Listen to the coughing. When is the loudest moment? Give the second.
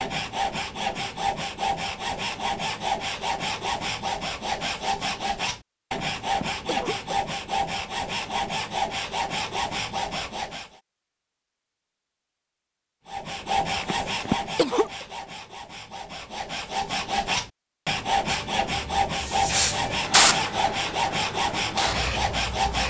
14 s.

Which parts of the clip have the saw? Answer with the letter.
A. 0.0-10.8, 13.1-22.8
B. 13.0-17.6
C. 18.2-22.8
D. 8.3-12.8
A.